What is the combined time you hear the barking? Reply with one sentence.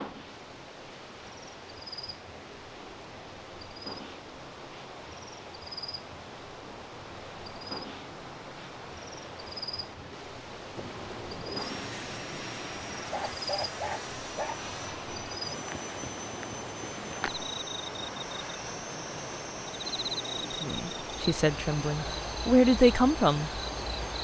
You can hear the barking for 2 seconds altogether.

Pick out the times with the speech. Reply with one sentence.
The speech can be heard from 20.4 to 23.5 s.